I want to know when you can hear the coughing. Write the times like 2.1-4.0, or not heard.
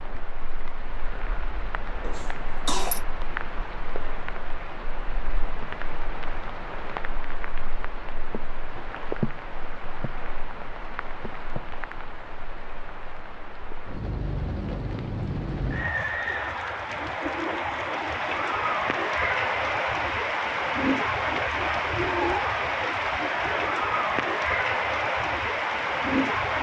2.0-3.0.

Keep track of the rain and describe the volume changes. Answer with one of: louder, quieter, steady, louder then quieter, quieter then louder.
louder.